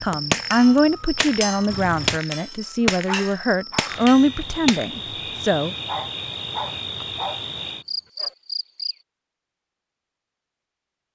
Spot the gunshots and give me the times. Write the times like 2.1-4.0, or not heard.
0.3-4.8.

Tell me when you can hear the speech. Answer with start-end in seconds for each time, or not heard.
0.0-5.8.